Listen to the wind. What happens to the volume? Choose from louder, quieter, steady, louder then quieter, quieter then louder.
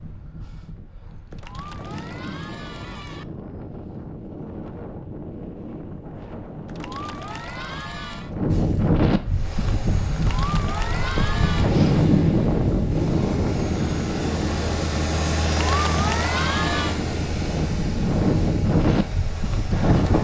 louder.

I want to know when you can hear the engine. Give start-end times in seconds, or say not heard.
9.2-20.1.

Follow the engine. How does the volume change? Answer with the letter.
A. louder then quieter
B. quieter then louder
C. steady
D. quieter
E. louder
A.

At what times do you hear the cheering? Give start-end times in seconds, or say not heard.
1.3-3.2, 6.7-8.3, 10.2-11.8, 15.5-17.0.